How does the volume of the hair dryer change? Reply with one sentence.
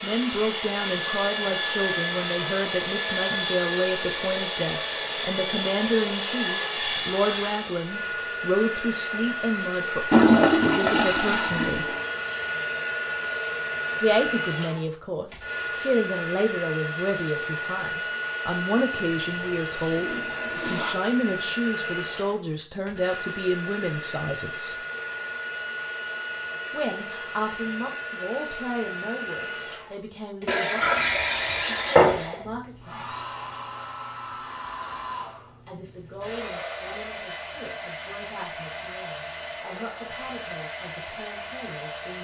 The volume of the hair dryer goes down.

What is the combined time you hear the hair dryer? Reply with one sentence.
You can hear the hair dryer for 42 seconds altogether.